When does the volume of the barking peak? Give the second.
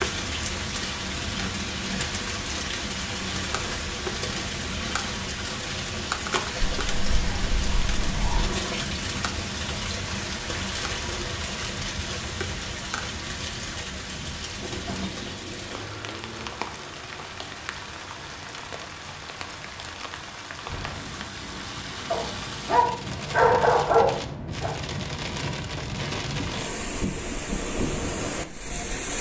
24 s.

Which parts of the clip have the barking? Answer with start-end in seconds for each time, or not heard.
6.6-8.5, 22.1-24.7.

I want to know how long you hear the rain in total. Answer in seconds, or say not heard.
29 s.